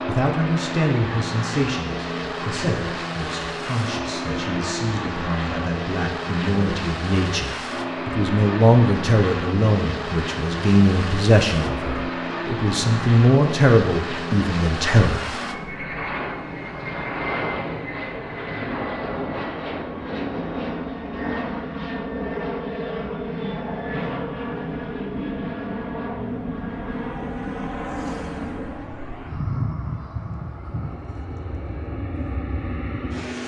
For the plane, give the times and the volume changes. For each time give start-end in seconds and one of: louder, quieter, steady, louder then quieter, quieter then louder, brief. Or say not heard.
0.0-33.4 steady.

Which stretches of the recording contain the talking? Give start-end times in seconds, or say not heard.
0.1-15.4.